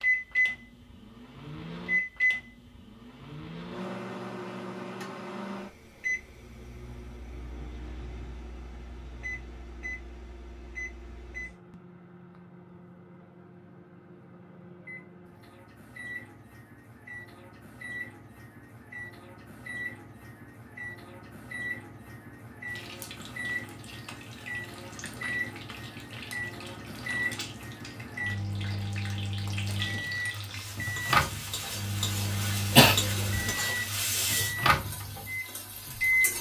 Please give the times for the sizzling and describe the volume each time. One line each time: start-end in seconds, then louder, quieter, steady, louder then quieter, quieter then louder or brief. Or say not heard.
22.6-36.3 louder.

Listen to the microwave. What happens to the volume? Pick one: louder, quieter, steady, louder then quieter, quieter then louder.
quieter then louder.